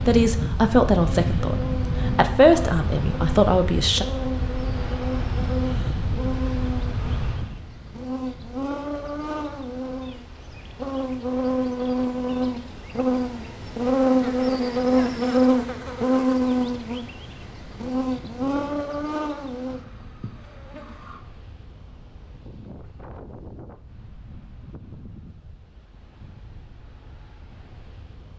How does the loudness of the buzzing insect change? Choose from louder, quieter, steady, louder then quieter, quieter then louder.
louder then quieter.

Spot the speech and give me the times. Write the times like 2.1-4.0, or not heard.
0.1-4.0.